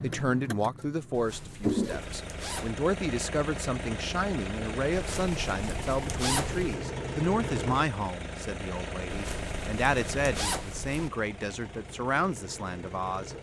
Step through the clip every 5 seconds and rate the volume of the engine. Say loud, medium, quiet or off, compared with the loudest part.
loud, loud, medium.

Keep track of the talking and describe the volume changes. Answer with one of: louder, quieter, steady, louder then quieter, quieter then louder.
steady.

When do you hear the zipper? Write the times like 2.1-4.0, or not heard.
1.1-2.8, 4.9-6.8, 9.1-11.1.